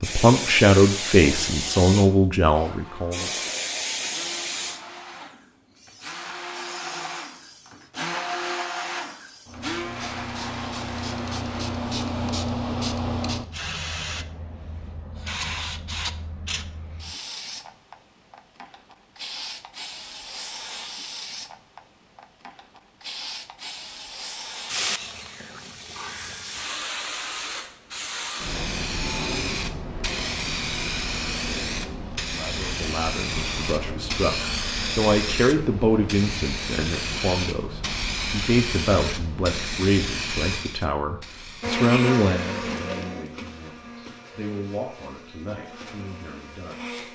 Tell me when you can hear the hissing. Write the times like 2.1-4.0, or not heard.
0.0-42.7.